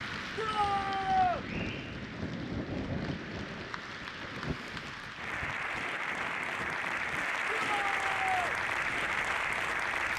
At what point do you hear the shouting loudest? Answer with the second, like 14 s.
1 s.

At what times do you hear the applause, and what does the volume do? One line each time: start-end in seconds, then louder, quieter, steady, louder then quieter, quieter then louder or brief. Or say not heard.
0.0-10.1 louder.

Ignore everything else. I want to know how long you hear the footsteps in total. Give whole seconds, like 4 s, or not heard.
not heard.